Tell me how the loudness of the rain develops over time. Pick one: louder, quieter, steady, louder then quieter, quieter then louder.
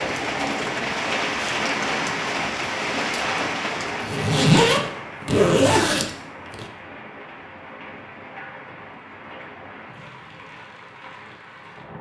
quieter.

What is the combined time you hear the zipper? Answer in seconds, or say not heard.
3 s.